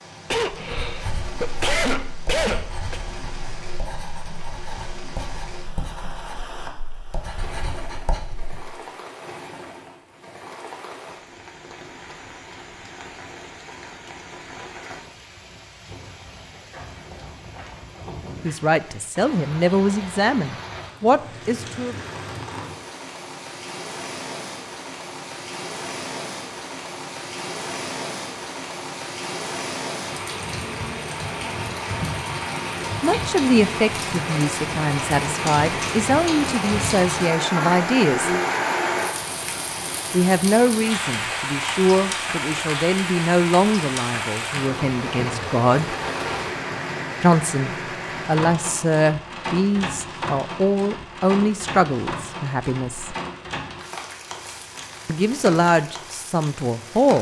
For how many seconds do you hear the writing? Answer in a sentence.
You can hear the writing for 8 seconds altogether.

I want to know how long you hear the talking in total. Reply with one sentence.
You can hear the talking for 23 seconds altogether.